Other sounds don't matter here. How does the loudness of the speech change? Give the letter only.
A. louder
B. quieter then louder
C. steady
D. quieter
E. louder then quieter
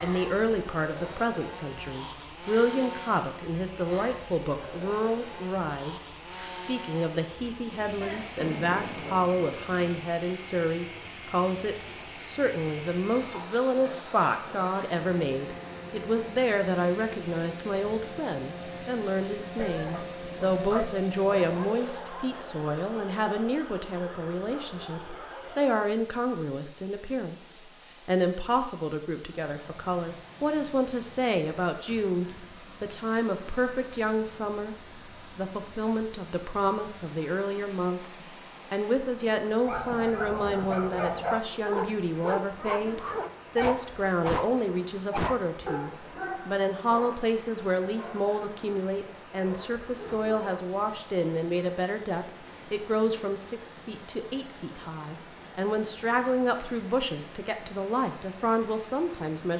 C.